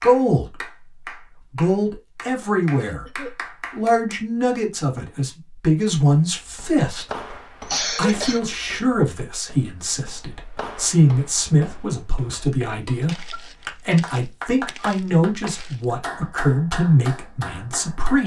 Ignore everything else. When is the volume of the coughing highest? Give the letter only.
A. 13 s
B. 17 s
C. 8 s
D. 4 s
C.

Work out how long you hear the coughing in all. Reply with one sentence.
You can hear the coughing for 3 seconds altogether.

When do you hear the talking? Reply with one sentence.
The talking can be heard from 0.0 to 0.7 s, from 1.5 to 7.0 s and from 8.0 to 18.2 s.